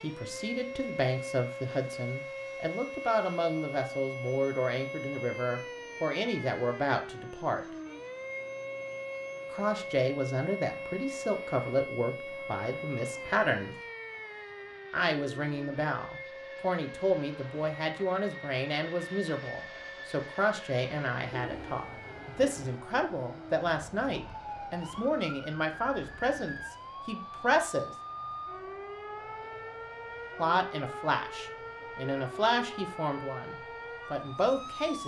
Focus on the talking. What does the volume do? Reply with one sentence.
The volume of the talking stays about the same.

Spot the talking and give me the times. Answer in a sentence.
The talking can be heard from 0.0 to 7.7 s, from 9.5 to 13.8 s, from 14.9 to 27.9 s and from 30.4 to 35.0 s.